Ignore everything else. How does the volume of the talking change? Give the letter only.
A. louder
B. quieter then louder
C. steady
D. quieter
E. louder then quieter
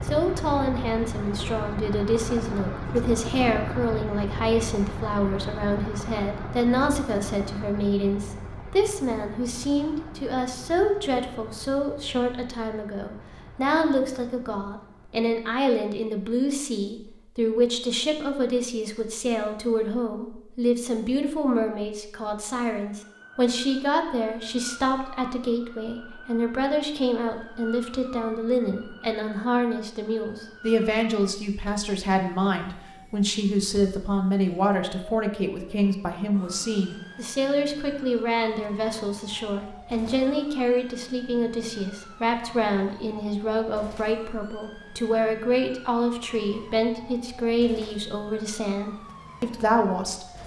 C.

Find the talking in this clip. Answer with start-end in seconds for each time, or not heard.
0.1-50.2.